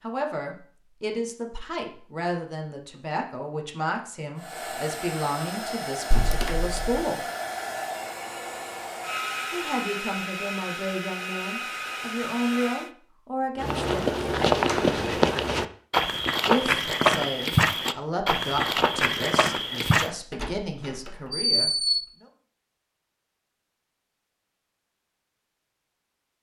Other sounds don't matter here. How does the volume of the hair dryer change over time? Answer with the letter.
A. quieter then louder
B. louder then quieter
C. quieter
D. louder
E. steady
E.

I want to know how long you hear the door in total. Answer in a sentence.
You can hear the door for 3 seconds altogether.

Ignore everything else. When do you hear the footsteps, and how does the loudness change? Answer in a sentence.
The footsteps can be heard from 13.6 to 20.1 s, at a steady volume.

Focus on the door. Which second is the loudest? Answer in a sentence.
The volume of the door peaks at 22 seconds.